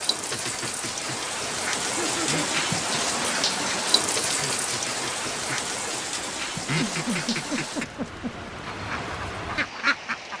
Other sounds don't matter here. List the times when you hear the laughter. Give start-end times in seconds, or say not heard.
1.8-2.5, 6.6-8.5.